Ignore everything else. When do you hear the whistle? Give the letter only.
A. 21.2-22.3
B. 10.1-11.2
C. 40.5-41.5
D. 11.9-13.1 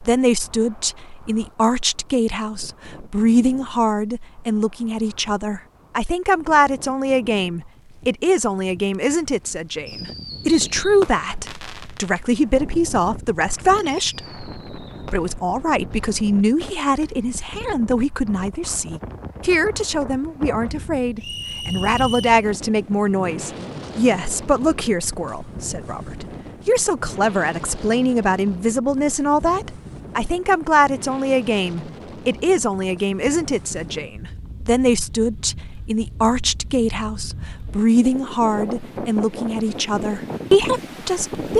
A.